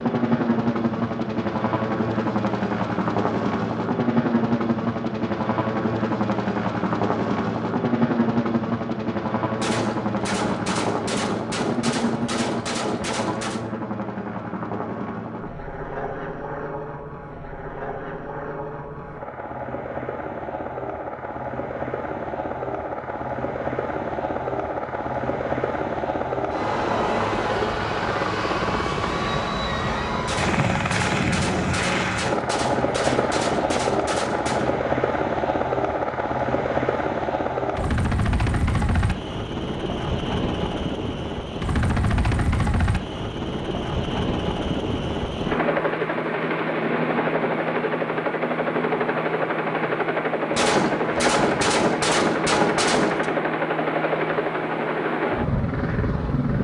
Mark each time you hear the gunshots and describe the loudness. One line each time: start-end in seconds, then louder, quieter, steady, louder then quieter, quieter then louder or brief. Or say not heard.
9.6-13.7 steady
30.2-34.9 steady
50.5-53.2 brief.